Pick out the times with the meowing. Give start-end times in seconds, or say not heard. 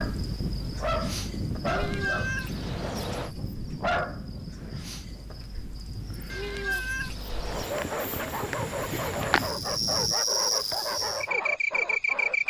1.6-3.3, 6.3-7.8.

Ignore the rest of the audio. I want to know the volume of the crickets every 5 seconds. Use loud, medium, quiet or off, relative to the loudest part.
quiet, medium, loud.